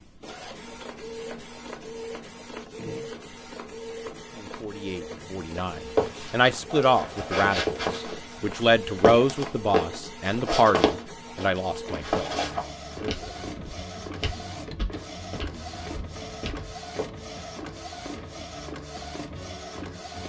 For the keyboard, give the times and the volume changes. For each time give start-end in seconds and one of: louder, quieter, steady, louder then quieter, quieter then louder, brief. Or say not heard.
not heard.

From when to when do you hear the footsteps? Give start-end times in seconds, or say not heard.
5.8-17.1.